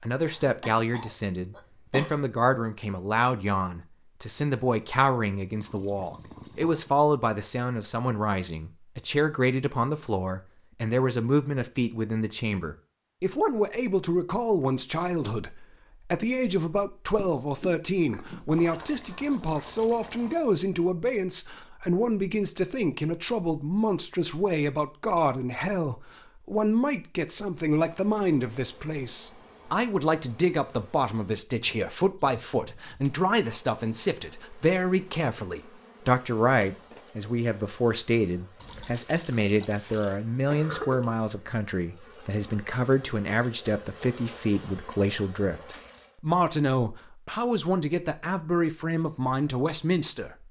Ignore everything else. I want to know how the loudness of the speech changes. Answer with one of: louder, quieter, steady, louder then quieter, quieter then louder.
steady.